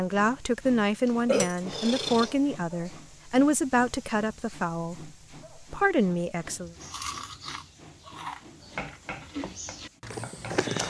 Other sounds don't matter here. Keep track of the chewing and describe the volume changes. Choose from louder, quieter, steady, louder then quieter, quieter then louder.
quieter then louder.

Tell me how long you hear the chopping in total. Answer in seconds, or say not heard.
2 s.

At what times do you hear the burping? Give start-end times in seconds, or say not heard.
1.2-2.4.